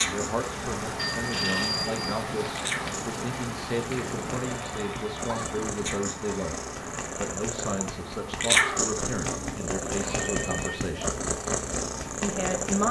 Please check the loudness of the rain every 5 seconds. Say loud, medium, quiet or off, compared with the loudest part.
loud, medium, medium.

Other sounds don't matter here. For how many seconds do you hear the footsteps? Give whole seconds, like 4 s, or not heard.
not heard.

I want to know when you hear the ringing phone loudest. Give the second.
2 s.